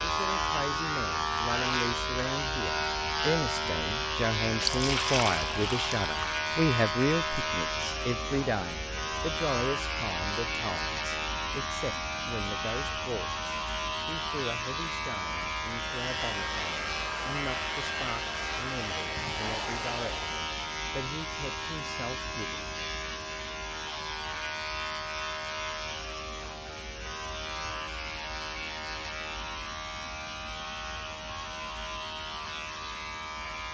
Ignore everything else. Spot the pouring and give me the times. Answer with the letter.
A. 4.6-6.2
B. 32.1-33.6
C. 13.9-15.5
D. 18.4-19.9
A.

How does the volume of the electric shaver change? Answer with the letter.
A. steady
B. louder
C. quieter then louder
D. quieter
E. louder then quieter
D.